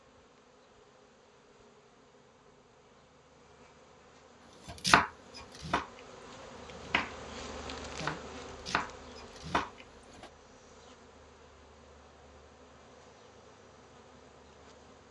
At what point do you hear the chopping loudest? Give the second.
5 s.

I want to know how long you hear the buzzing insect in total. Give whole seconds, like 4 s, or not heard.
15 s.